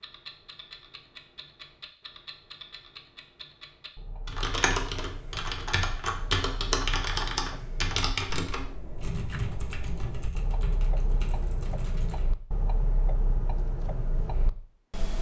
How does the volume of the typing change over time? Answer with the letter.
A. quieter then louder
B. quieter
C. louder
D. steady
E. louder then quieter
B.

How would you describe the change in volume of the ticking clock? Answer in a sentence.
The volume of the ticking clock goes up.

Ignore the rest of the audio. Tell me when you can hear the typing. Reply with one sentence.
The typing can be heard from 4.2 to 12.2 s.